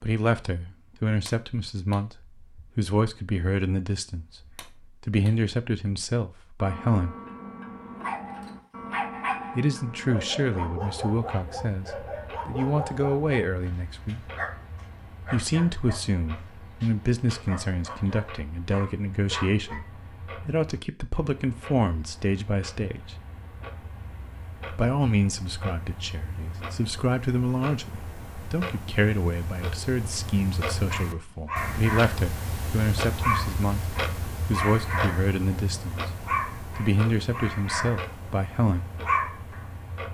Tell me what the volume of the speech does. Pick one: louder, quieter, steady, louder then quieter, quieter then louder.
steady.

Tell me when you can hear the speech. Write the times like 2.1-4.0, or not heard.
0.0-7.2, 9.6-14.2, 15.3-23.1, 24.7-38.9.